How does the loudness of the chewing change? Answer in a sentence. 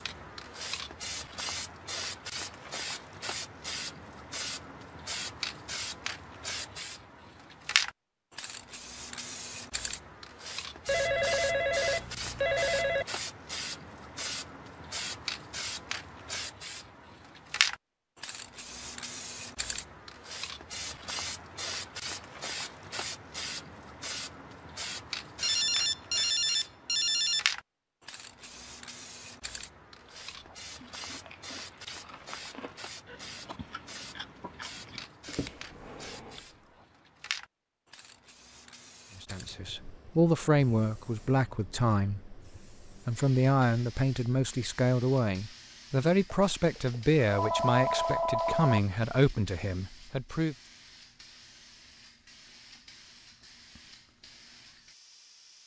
The volume of the chewing goes up.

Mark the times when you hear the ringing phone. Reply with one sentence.
The ringing phone can be heard from 10.8 to 13.1 s, from 25.4 to 27.4 s and from 46.3 to 48.8 s.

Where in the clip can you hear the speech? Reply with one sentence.
You can hear the speech from 39.1 to 50.5 s.